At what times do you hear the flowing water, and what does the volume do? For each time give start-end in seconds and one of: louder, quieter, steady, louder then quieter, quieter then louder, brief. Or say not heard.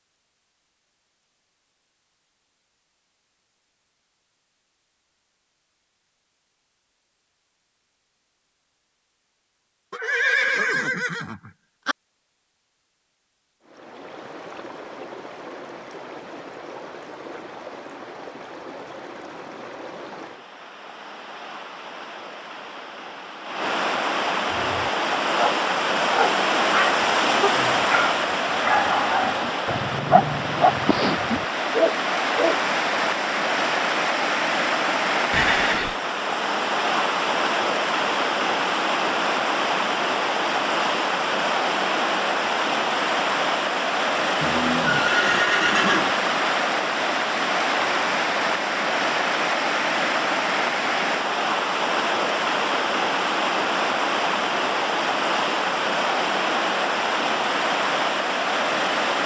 13.6-59.2 louder.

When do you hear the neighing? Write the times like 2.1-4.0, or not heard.
9.9-11.9, 35.3-36.0, 44.4-46.1.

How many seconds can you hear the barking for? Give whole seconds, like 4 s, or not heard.
8 s.